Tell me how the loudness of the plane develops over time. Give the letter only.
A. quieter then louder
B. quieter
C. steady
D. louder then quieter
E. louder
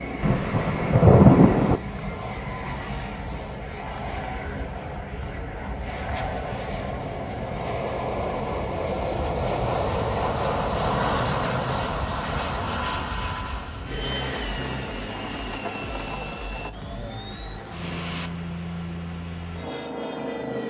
D.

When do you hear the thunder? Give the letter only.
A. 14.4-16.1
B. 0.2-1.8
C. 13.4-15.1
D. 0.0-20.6
B.